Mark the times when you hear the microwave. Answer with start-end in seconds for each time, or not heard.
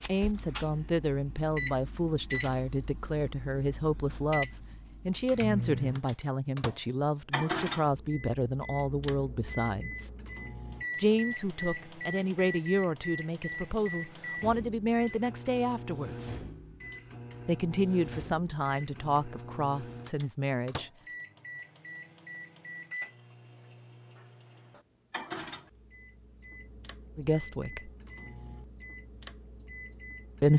0.0-30.5.